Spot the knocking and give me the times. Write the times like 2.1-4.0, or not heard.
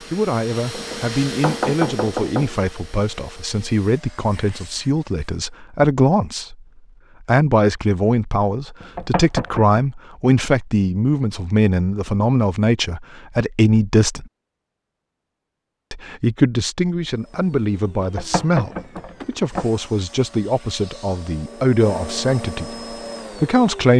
0.7-2.6, 8.8-9.8, 18.0-19.6.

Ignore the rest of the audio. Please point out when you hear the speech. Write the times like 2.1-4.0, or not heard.
0.1-6.5, 7.2-14.2, 15.9-22.8, 23.4-23.9.